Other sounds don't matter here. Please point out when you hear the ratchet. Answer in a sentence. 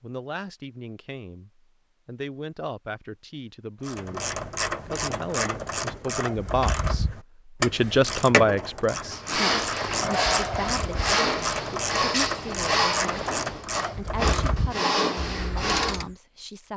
You can hear the ratchet from 3.8 to 16.1 s.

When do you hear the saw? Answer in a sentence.
The saw can be heard from 9.1 to 16.1 s.